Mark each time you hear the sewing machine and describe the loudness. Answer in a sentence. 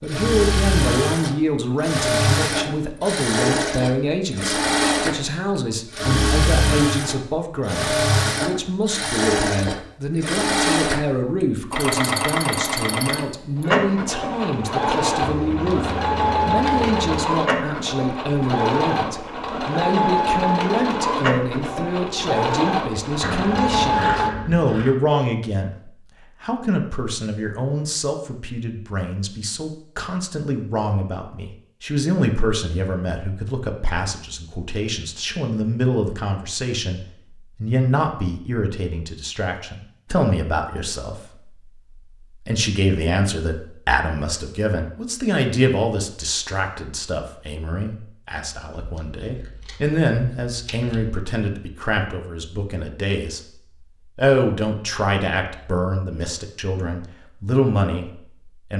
The sewing machine can be heard from 0.1 to 24.3 s, at a steady volume.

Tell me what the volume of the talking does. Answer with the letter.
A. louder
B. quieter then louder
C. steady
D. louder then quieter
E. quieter
C.